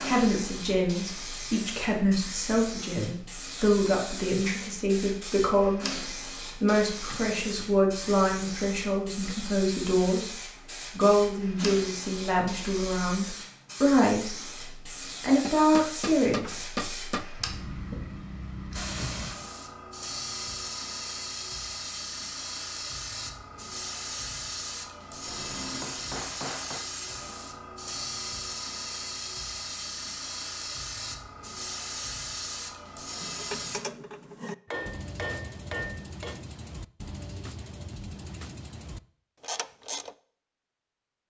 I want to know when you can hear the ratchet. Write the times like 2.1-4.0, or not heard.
33.2-40.1.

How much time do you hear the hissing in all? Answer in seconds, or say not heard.
34 s.